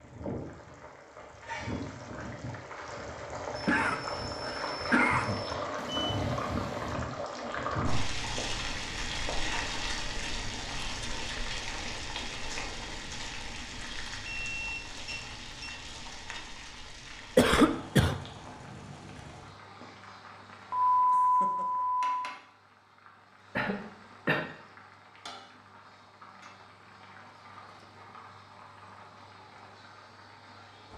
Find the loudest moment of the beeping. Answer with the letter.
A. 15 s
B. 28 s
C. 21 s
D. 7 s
C.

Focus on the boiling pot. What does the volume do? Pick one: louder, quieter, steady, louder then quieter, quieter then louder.
quieter.